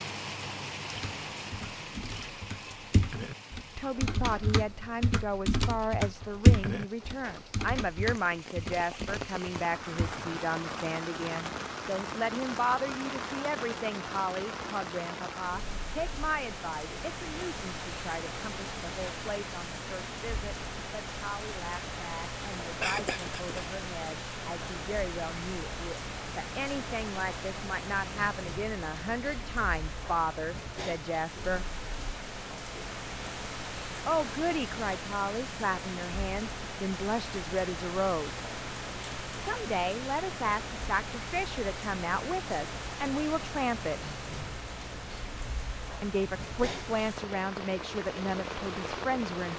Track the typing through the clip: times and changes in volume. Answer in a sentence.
You can hear the typing from 0.9 to 10.4 s, getting louder then quieter.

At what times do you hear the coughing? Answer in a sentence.
You can hear the coughing from 22.8 to 23.6 s.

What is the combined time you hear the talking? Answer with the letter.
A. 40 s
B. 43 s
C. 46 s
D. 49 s
A.